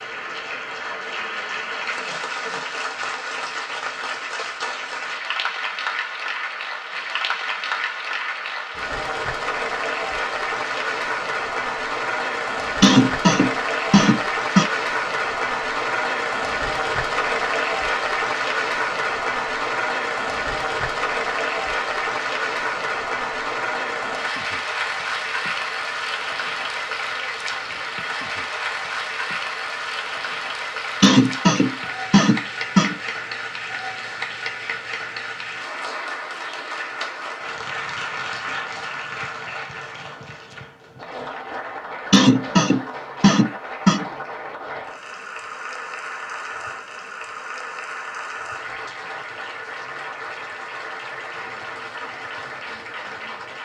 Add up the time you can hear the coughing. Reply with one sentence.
The coughing can be heard for 6 seconds in total.